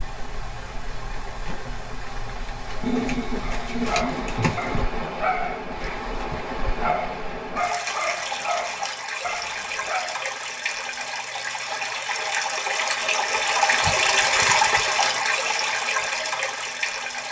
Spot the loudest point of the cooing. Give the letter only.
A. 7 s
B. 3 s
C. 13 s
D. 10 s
B.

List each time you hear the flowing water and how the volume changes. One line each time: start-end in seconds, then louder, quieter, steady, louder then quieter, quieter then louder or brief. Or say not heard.
0.0-17.2 louder.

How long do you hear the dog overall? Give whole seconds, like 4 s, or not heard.
7 s.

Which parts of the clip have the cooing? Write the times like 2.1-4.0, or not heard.
2.8-4.8.